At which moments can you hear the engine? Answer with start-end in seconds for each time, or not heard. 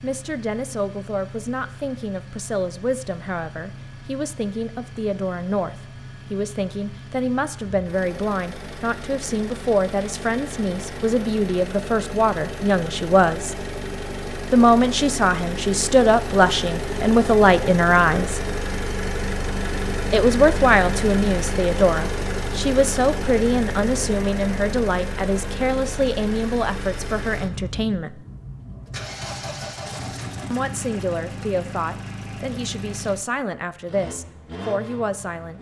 0.0-35.5.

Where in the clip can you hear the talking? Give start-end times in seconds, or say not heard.
0.0-13.7, 14.5-18.4, 20.1-28.2, 30.5-35.5.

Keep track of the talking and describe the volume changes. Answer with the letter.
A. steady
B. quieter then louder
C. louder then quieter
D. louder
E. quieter
C.